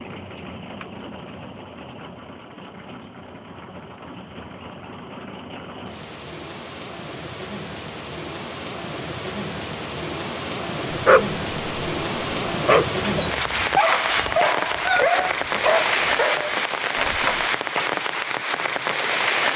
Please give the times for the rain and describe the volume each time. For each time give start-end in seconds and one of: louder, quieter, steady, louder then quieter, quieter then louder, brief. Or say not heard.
0.0-19.5 louder.